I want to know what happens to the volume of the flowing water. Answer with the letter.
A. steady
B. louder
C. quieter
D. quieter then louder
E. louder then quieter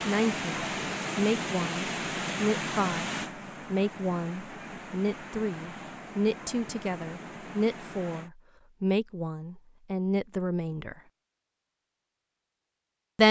C.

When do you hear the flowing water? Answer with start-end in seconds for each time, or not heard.
0.0-8.3.